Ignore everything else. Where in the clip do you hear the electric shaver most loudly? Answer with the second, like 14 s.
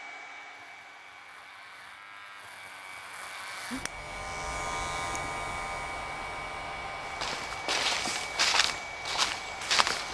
5 s.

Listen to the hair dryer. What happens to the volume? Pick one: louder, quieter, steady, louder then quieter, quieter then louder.
louder.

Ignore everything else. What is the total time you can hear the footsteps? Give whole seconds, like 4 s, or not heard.
3 s.